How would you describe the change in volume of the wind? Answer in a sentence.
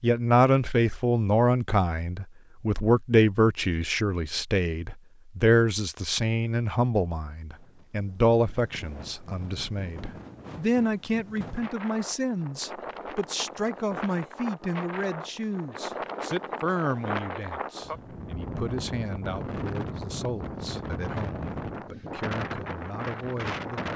The loudness of the wind goes up.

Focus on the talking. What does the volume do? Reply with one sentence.
The volume of the talking goes down.